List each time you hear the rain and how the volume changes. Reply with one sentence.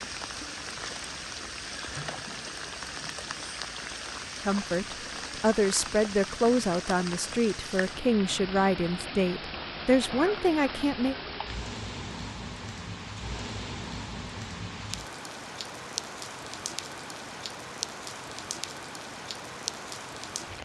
You can hear the rain from 0.0 to 20.6 s, at a steady volume.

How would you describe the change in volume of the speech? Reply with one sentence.
The loudness of the speech stays about the same.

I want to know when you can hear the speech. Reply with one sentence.
You can hear the speech from 4.5 to 11.2 s.